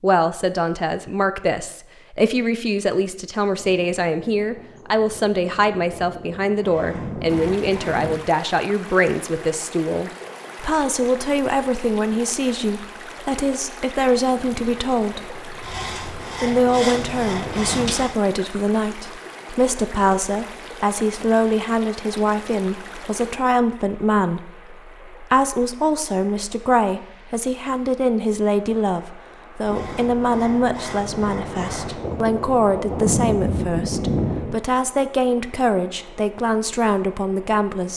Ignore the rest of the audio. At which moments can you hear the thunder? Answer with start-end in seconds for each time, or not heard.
3.5-8.2, 14.3-17.9, 29.7-34.6.